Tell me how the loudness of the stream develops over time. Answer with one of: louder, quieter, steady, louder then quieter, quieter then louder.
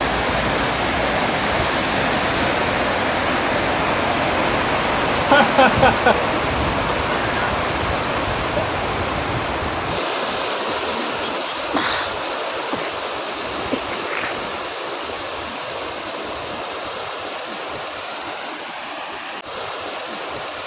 quieter.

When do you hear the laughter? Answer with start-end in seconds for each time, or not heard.
5.3-6.2.